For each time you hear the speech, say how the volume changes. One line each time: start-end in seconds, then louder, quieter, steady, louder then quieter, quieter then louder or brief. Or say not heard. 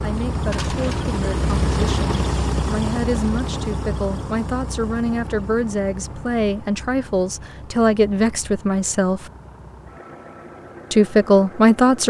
0.0-9.3 louder
10.9-12.0 brief.